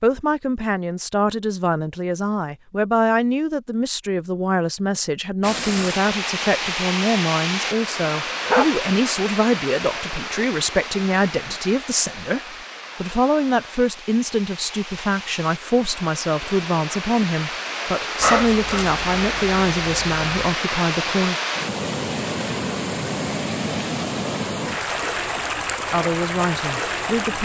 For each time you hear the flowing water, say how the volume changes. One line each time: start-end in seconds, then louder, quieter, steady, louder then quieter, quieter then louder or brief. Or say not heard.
5.4-27.4 quieter then louder.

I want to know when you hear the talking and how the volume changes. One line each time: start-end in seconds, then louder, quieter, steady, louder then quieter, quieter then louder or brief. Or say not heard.
0.0-21.4 steady
25.9-27.4 brief.